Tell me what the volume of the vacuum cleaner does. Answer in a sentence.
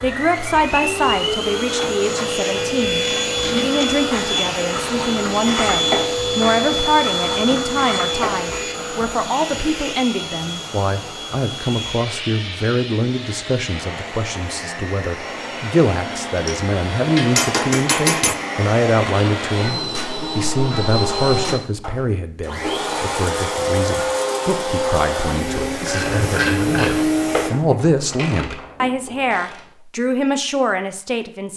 The volume of the vacuum cleaner goes down, then up.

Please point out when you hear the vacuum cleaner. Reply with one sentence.
You can hear the vacuum cleaner from 0.0 to 27.5 s.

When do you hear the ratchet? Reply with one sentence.
The ratchet can be heard from 1.6 to 8.7 s and from 25.9 to 29.6 s.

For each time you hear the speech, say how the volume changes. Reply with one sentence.
The speech can be heard from 0.0 to 31.5 s, at a steady volume.